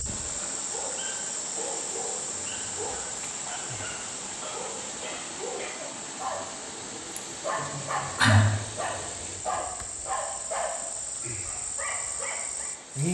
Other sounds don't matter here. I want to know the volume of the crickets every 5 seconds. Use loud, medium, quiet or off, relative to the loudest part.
loud, medium, loud.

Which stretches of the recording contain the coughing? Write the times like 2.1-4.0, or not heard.
7.2-8.6.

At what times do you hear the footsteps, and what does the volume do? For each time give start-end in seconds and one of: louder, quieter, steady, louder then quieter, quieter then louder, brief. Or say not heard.
not heard.